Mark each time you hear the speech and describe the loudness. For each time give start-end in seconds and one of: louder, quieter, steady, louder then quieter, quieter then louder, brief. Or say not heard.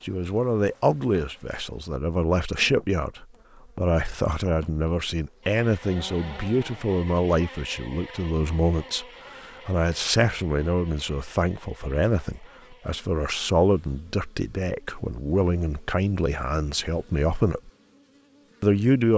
0.0-17.7 steady
18.6-19.1 brief.